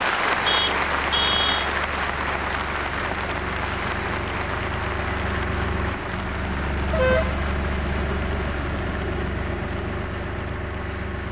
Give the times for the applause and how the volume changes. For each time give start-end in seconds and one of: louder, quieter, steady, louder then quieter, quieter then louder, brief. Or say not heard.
0.0-11.2 quieter.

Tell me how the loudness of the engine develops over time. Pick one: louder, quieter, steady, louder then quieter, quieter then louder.
louder.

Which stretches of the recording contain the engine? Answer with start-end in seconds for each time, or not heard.
0.0-11.2.